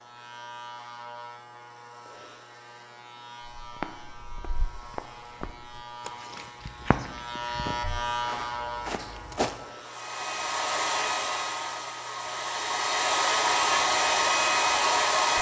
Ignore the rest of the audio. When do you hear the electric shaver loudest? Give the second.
8 s.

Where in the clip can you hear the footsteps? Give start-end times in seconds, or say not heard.
3.5-9.7.